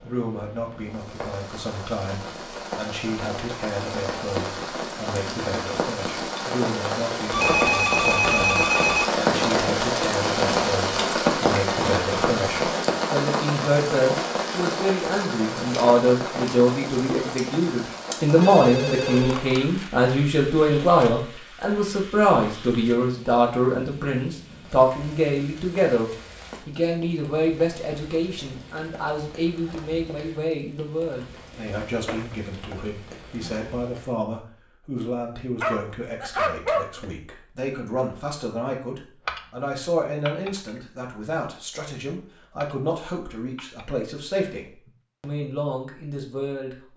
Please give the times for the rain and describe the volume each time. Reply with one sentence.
The rain can be heard from 0.0 to 34.2 s, getting louder then quieter.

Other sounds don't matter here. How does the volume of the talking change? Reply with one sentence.
The loudness of the talking goes up, then down.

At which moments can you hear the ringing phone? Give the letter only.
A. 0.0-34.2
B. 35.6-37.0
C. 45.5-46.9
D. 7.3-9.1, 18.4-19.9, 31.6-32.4
D.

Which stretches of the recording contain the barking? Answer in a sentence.
You can hear the barking from 35.6 to 37.0 s.